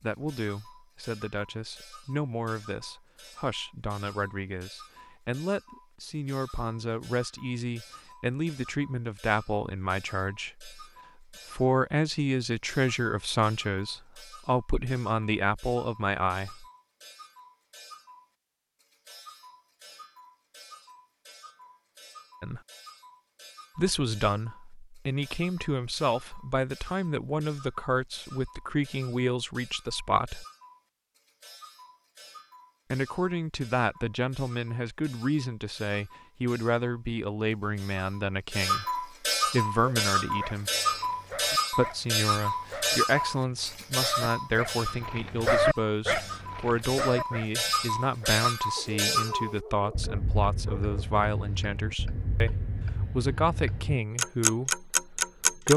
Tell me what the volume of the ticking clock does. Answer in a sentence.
The loudness of the ticking clock goes up.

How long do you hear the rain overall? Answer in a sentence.
The rain can't be heard in this clip.